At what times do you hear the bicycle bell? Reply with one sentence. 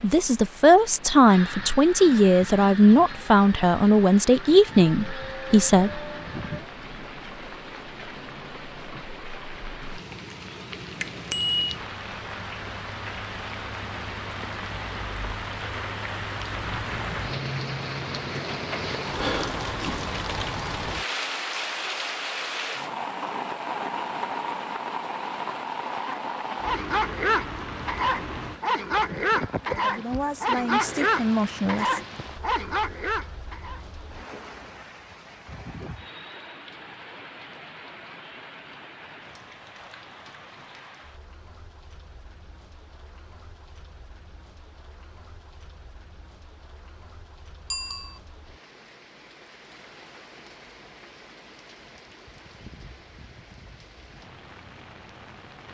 The bicycle bell can be heard from 11.0 to 11.8 s and from 47.7 to 48.2 s.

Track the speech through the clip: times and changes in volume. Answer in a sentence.
The speech can be heard from 0.0 to 6.0 s, at a steady volume; and briefly from 29.6 to 32.0 s.